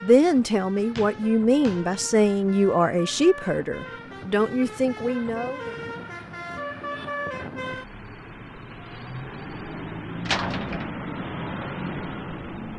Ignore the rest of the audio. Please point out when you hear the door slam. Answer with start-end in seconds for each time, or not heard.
0.9-1.9, 10.2-10.9.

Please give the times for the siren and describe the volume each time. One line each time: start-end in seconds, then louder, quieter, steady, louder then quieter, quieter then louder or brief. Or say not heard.
not heard.